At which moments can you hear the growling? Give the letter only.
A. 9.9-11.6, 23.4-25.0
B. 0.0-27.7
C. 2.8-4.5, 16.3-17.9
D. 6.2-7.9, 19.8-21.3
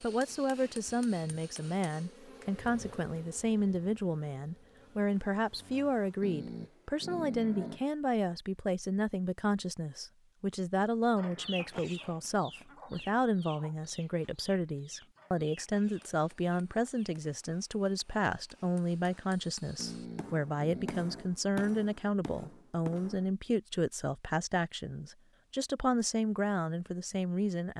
D.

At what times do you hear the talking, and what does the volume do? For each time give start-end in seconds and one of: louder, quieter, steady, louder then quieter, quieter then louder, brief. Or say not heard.
0.0-27.7 steady.